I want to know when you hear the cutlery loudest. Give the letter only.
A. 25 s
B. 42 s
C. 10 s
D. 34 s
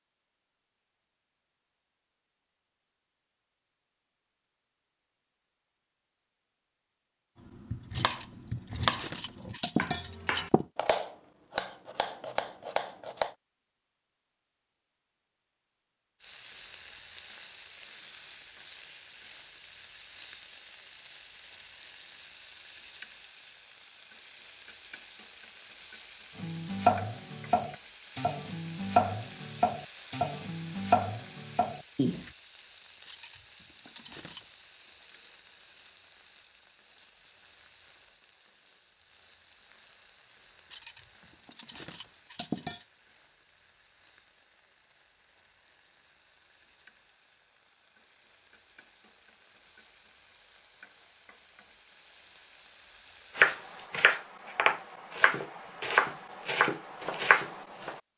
C.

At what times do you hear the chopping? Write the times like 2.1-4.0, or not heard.
7.5-13.3, 26.4-32.3, 53.4-58.0.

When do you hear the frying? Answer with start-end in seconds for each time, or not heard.
16.2-54.0.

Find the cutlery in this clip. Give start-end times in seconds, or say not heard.
7.8-10.7, 33.0-34.4, 40.7-42.9.